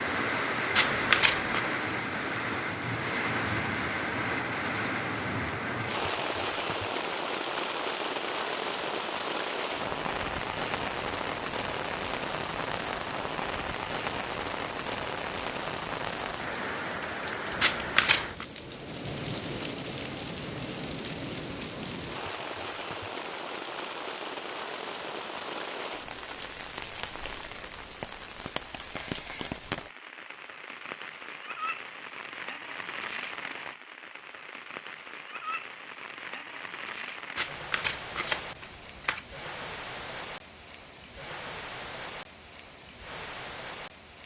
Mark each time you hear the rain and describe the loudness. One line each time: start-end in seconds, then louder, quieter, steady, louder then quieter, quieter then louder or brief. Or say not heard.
0.0-44.2 quieter.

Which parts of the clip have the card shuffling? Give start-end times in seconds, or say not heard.
0.8-1.6, 17.6-18.4, 37.4-39.2.